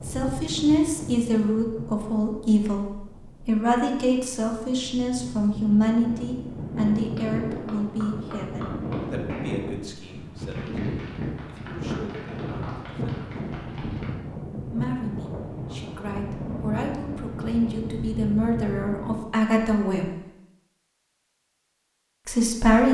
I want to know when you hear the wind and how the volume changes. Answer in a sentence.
You can hear the wind from 0.0 to 19.2 s, getting louder.